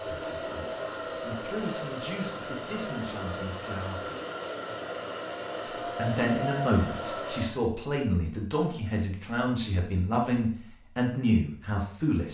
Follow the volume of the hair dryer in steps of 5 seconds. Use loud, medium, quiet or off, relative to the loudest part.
loud, loud, off.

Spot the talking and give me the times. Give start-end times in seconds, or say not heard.
0.1-4.1, 6.0-12.2.